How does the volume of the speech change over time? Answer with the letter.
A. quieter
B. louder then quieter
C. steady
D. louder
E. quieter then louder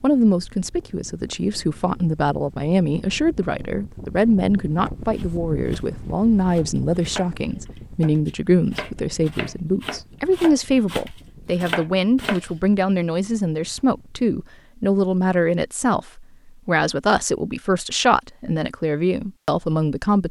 C.